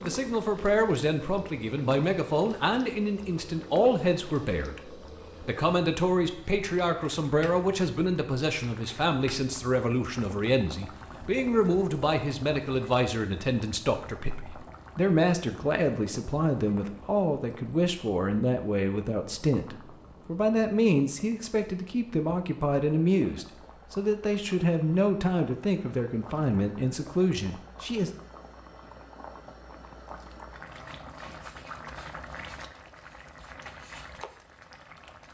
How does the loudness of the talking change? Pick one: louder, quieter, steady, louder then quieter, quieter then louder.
steady.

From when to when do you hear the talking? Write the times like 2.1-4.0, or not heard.
0.0-28.1.